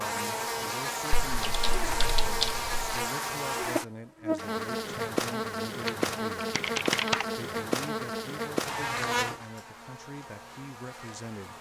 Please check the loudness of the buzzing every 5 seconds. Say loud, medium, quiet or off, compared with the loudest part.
loud, loud, quiet.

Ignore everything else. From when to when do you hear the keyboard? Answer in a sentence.
You can hear the keyboard from 1.2 to 3.0 s and from 5.8 to 7.2 s.